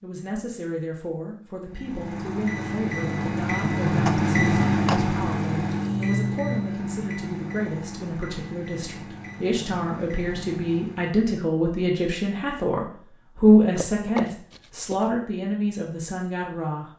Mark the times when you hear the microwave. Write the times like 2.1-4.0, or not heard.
1.6-11.2.